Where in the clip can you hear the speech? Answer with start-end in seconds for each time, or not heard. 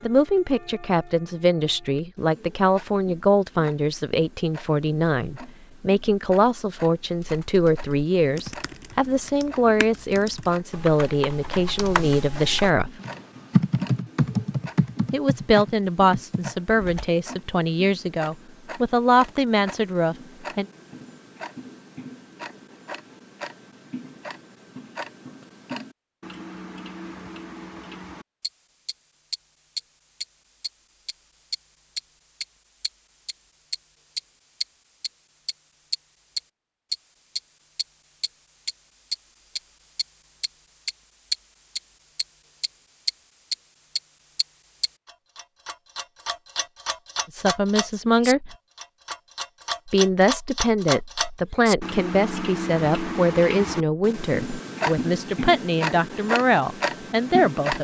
0.0-12.9, 15.1-20.6, 47.3-48.5, 49.9-57.7.